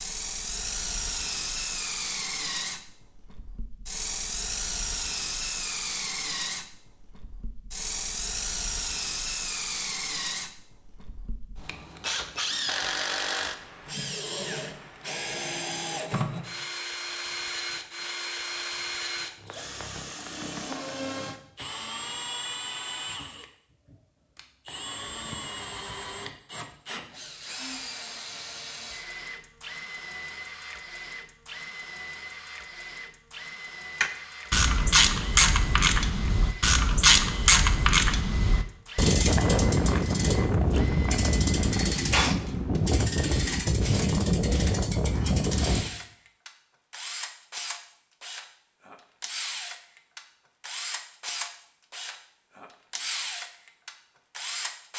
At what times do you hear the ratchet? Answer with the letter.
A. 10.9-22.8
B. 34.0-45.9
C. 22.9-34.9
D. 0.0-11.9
B.